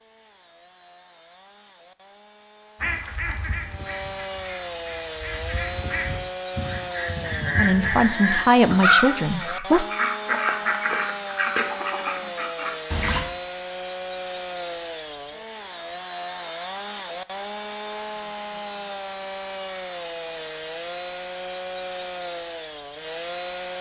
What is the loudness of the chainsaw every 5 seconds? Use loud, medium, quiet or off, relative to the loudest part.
medium, loud, loud, loud, loud.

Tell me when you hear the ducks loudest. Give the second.
9 s.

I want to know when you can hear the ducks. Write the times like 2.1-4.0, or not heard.
2.8-13.2.